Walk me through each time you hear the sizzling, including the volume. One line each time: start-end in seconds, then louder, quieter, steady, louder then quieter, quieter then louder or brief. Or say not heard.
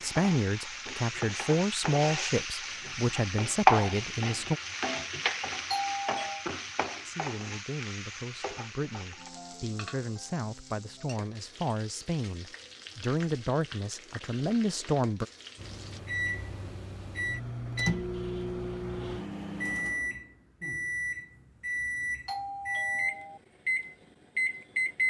0.0-16.0 louder then quieter.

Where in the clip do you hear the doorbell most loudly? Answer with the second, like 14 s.
6 s.